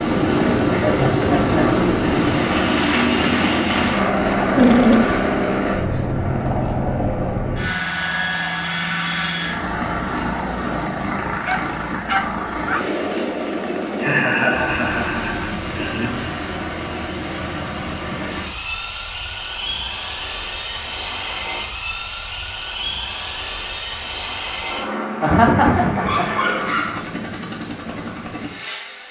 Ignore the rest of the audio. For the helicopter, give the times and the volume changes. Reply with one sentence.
The helicopter can be heard from 0.0 to 29.0 s, getting quieter.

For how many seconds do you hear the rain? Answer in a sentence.
You can't hear the rain here.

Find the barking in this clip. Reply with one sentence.
The barking can be heard from 4.5 to 5.2 s, from 11.4 to 12.8 s and from 25.2 to 27.0 s.